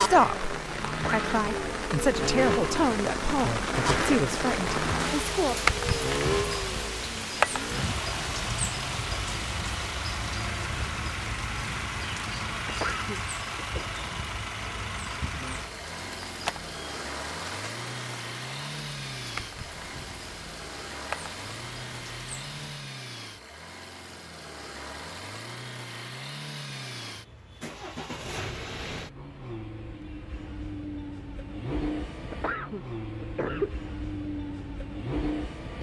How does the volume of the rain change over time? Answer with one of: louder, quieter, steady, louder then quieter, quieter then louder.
quieter.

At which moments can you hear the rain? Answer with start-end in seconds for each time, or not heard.
0.0-22.8.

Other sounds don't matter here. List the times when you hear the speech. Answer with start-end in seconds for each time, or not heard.
0.0-5.8.